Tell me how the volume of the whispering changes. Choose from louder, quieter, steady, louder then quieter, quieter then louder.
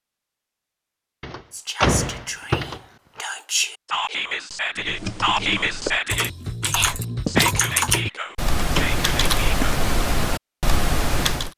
louder then quieter.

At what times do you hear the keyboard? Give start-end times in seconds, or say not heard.
4.8-11.5.